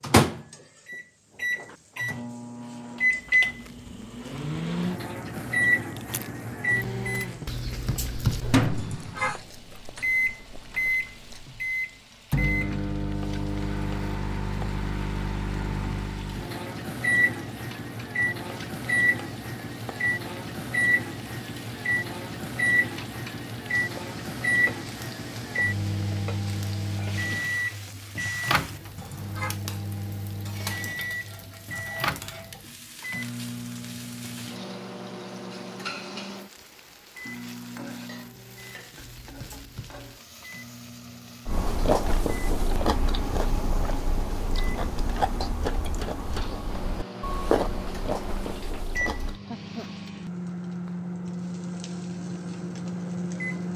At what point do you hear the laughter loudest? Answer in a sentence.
The volume of the laughter peaks at 9 seconds.